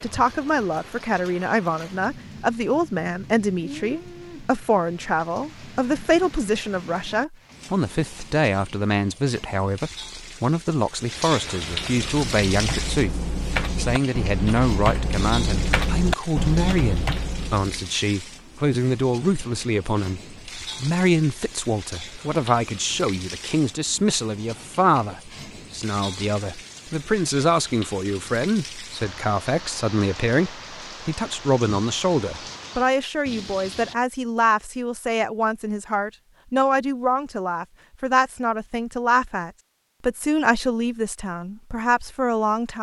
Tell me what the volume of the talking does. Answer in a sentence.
The loudness of the talking stays about the same.